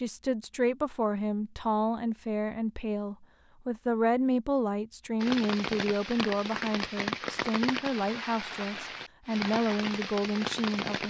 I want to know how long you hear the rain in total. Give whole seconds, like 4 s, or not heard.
6 s.